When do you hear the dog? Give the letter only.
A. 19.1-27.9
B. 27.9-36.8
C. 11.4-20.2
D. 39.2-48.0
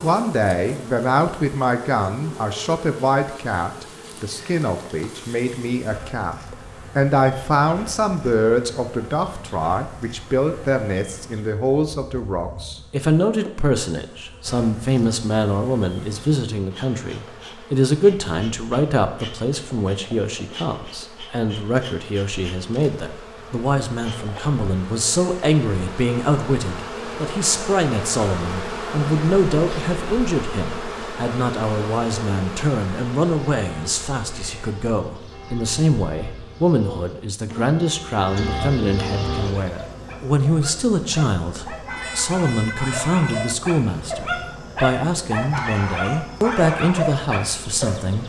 D.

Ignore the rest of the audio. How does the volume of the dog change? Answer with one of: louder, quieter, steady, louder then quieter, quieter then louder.
louder.